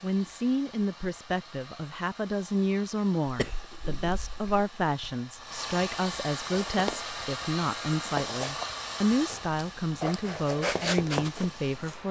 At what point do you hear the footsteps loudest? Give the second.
11 s.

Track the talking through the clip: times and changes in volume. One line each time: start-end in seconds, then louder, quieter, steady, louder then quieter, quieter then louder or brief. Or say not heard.
0.0-12.0 steady.